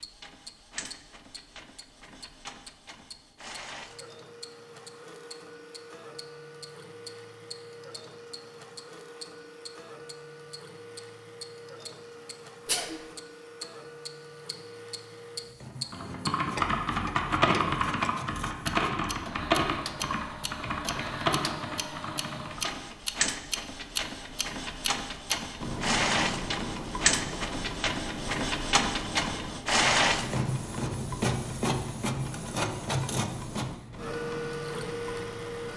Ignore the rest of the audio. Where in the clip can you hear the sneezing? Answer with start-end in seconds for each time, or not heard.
12.7-13.1.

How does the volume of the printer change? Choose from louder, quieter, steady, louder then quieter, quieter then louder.
louder.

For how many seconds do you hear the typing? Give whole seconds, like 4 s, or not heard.
7 s.